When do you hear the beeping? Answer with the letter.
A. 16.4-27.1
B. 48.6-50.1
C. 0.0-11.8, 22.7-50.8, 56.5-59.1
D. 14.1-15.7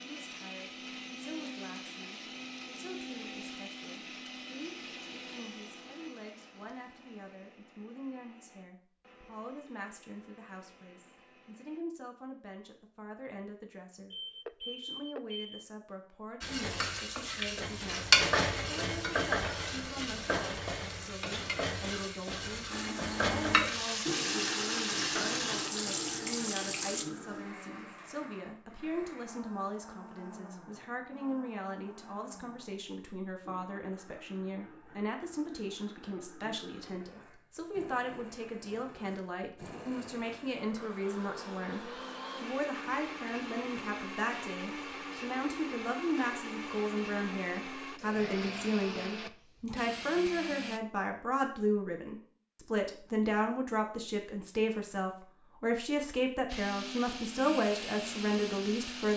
D.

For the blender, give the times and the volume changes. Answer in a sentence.
You can hear the blender from 0.0 to 11.8 s, getting quieter; from 22.7 to 50.8 s, getting quieter then louder; and briefly from 56.5 to 59.1 s.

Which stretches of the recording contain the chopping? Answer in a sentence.
You can't hear the chopping here.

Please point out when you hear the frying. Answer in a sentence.
The frying can be heard from 16.4 to 27.1 s.